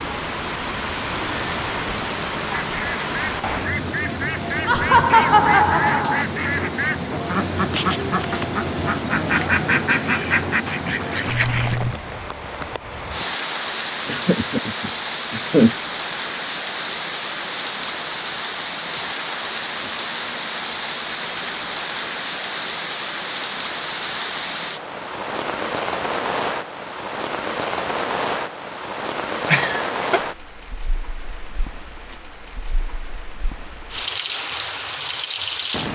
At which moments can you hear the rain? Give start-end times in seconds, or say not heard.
0.0-35.9.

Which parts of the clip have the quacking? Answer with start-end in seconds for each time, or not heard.
2.7-11.8.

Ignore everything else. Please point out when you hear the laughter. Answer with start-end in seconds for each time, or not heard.
4.7-6.2, 14.1-15.8, 29.4-30.2.